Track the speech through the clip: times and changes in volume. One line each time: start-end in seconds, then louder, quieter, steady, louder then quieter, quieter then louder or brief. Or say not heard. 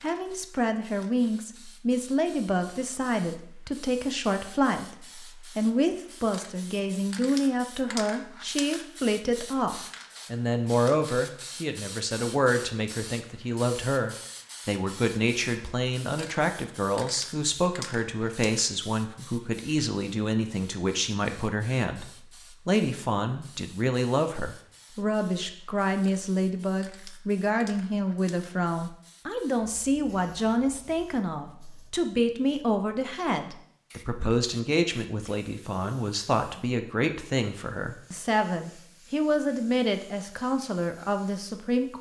0.0-22.1 steady
22.6-41.9 steady.